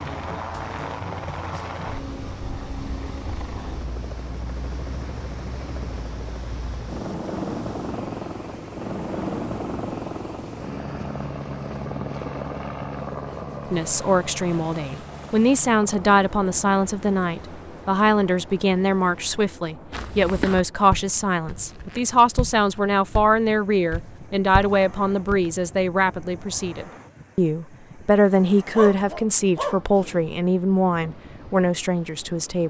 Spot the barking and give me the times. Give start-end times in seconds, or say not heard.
28.7-30.3.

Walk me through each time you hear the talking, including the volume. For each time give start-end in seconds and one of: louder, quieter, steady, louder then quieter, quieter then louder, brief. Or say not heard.
13.7-32.6 steady.